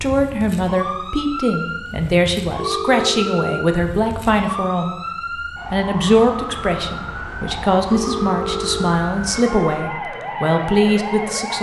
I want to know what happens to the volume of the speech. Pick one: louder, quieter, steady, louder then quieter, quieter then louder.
steady.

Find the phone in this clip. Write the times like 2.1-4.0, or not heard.
2.5-3.6, 7.9-8.9.